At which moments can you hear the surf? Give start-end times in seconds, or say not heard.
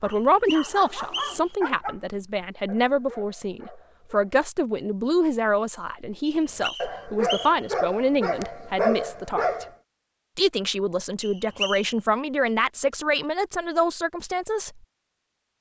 not heard.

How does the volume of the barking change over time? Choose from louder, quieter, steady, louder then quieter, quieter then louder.
louder.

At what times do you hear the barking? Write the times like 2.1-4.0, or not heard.
0.0-4.3, 6.5-9.7.